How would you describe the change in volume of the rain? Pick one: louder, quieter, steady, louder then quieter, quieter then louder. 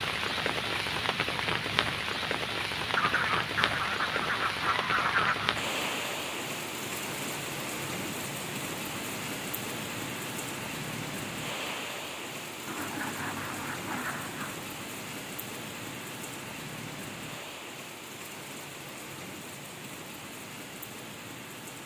quieter.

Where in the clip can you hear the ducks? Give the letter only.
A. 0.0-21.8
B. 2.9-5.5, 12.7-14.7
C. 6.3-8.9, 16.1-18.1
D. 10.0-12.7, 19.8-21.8
B.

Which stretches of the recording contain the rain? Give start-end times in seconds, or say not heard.
0.0-21.8.